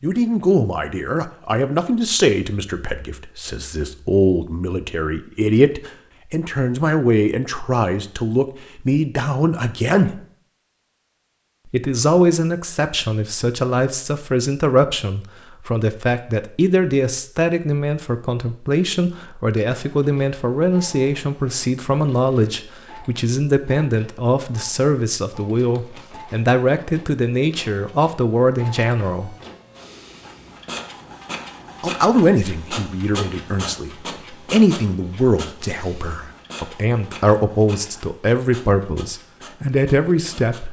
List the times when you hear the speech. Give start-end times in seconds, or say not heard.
0.0-10.2, 11.7-29.4, 31.8-40.6.